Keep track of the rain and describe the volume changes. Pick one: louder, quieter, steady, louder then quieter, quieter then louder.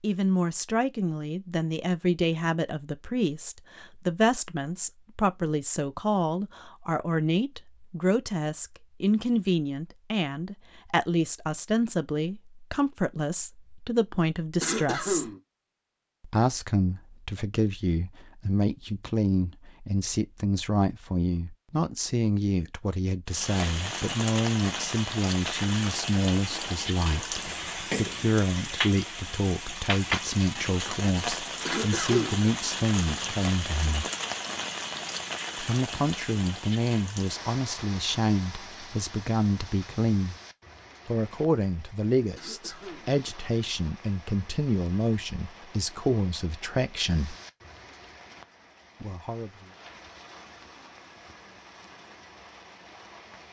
quieter.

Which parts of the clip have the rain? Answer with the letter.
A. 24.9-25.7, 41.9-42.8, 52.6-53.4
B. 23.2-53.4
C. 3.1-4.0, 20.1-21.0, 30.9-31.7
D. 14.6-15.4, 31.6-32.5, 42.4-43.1
B.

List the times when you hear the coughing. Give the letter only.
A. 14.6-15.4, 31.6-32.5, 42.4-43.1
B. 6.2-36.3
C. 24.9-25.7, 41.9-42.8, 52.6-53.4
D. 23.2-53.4
A.